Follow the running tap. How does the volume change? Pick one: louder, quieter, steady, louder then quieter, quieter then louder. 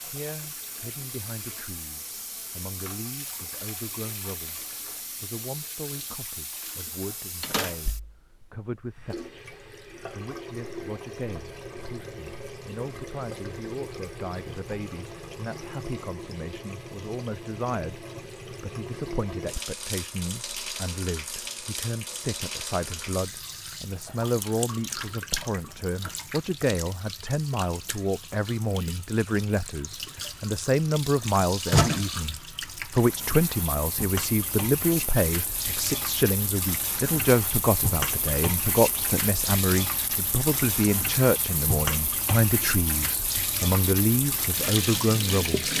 louder.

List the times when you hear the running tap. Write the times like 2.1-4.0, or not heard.
0.0-45.7.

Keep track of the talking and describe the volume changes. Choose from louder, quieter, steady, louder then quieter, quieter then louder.
louder.